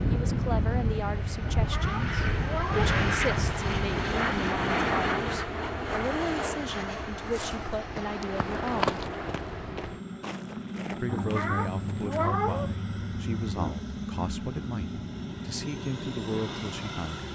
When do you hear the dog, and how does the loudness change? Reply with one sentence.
You can't hear the dog here.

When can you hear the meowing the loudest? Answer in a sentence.
The volume of the meowing peaks at 12 seconds.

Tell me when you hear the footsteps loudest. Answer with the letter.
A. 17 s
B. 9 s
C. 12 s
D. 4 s
B.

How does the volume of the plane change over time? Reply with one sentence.
The volume of the plane goes down.